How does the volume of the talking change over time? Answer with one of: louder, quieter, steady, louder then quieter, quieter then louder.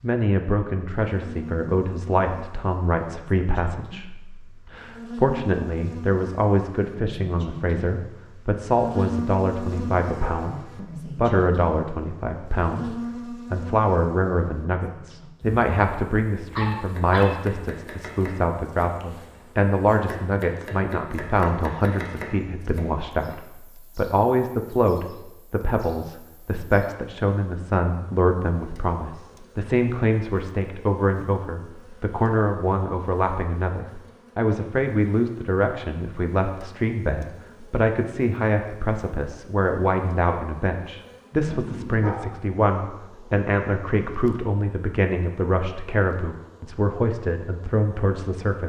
steady.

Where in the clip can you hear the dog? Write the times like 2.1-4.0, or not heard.
9.7-10.4, 16.6-17.3, 41.5-42.2.